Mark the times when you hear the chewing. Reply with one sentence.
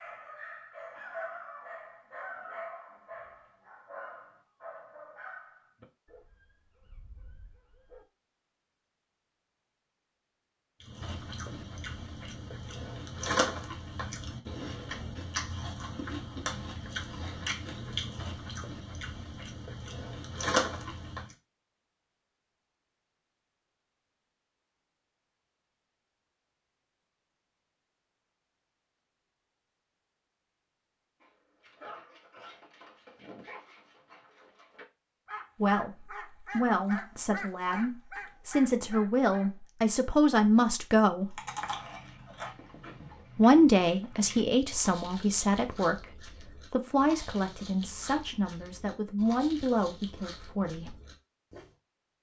The chewing can be heard from 10.8 to 21.4 s and from 41.2 to 51.7 s.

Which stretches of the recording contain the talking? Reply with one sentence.
The talking can be heard from 35.6 to 41.4 s and from 43.4 to 51.0 s.